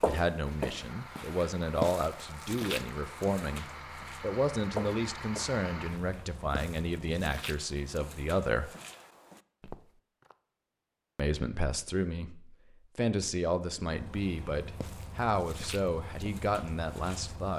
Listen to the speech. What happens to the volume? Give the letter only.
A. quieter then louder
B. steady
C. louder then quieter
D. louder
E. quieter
B.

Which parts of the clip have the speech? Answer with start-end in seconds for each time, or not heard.
0.0-8.7, 11.2-17.5.